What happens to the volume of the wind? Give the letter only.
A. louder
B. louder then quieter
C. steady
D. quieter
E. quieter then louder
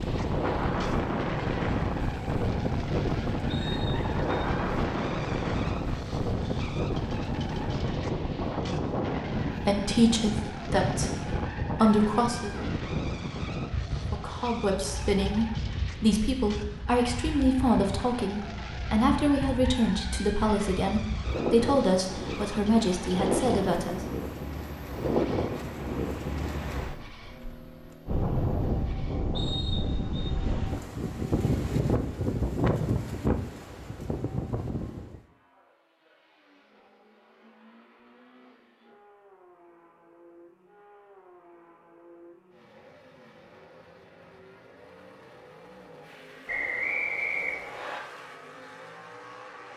E.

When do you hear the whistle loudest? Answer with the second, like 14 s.
47 s.